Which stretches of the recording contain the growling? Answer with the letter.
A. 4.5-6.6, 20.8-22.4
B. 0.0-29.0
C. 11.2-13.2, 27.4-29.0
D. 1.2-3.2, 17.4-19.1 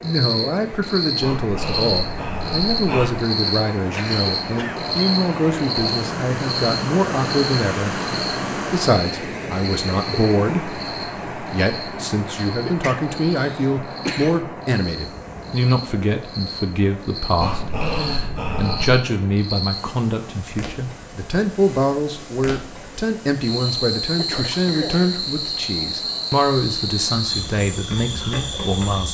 D.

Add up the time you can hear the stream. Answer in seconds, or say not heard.
29 s.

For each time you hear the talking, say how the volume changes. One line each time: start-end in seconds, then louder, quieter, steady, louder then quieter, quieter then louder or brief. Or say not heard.
0.0-29.0 steady.